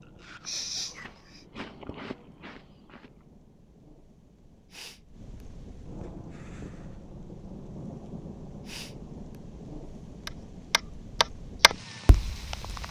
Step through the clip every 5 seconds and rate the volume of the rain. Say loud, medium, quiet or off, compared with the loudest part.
quiet, loud, loud.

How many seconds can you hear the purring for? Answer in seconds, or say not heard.
not heard.